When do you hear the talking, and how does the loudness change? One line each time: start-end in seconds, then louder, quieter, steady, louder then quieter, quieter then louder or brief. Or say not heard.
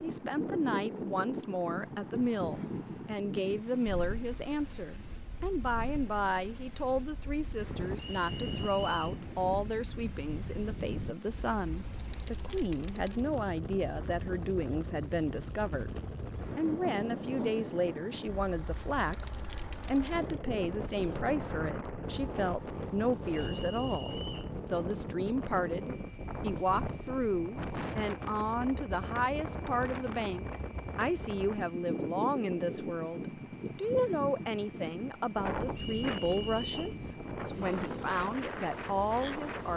0.0-39.7 steady.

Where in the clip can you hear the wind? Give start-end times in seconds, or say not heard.
0.0-39.7.